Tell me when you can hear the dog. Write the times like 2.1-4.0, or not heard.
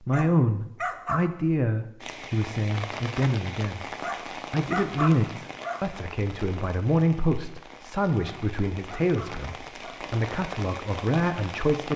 0.1-1.3, 4.0-5.9, 8.2-10.1.